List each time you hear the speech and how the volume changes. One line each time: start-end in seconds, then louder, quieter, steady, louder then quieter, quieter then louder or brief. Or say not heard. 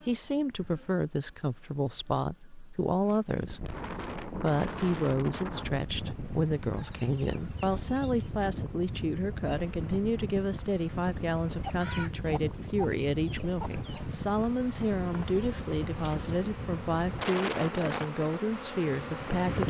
0.1-19.6 steady.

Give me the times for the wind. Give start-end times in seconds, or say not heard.
3.3-19.6.